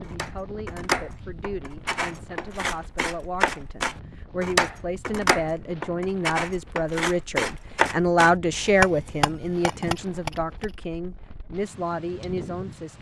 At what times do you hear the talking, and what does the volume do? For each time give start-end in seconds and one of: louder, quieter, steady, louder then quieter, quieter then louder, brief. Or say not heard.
0.0-12.9 louder then quieter.